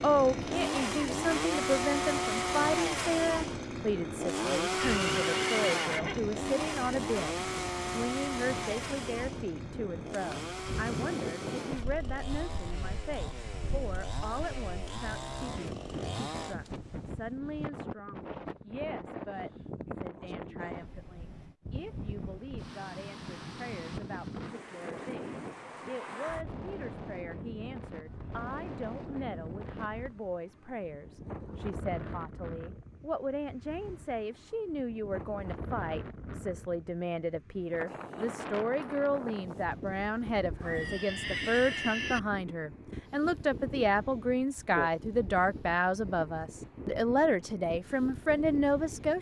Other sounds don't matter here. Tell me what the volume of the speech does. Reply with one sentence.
The volume of the speech goes down, then up.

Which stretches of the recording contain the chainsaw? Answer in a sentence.
The chainsaw can be heard from 0.0 to 16.6 s.